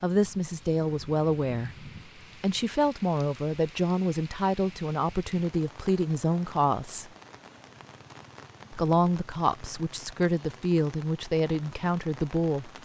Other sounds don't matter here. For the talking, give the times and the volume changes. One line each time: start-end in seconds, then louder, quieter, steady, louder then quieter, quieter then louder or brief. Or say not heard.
0.0-7.1 steady
8.7-12.7 steady.